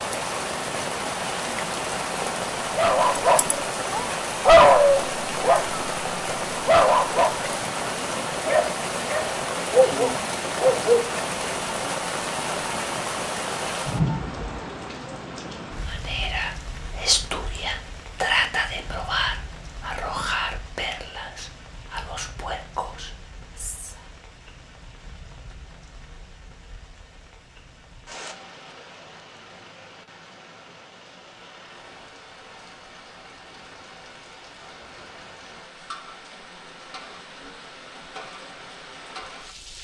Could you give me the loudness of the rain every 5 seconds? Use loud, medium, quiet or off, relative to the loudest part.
loud, loud, loud, quiet, quiet, quiet, quiet, quiet.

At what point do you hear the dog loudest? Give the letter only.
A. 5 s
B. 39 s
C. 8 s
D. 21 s
A.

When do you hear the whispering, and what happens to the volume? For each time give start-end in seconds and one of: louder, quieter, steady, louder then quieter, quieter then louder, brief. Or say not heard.
15.8-24.1 quieter.